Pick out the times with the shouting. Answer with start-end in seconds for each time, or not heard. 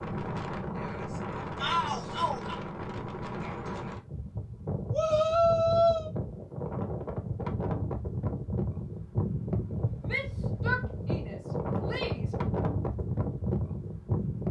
1.6-2.6, 4.9-6.1, 10.1-12.3.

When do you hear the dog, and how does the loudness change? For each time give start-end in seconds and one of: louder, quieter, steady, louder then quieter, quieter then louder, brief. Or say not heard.
not heard.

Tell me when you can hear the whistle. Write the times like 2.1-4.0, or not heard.
not heard.